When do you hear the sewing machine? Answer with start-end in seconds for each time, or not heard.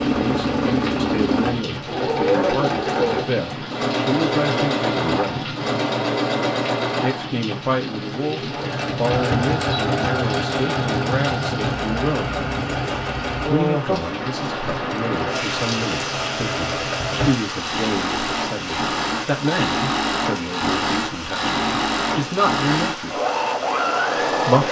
0.0-24.6.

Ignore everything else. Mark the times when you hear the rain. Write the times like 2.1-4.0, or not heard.
0.0-24.6.